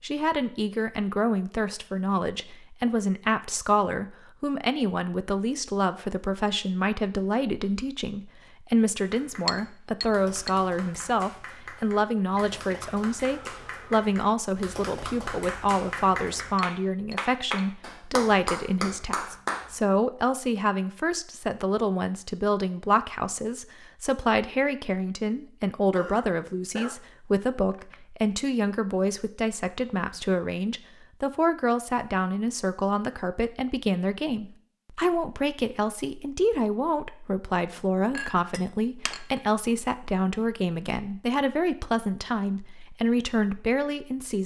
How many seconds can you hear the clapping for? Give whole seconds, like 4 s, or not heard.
11 s.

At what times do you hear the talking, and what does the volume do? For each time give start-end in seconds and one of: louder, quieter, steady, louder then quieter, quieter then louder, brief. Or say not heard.
0.0-44.4 steady.